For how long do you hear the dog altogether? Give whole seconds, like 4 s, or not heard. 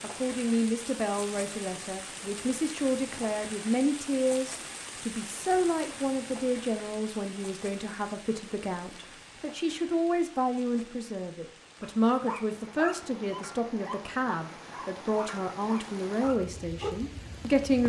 5 s.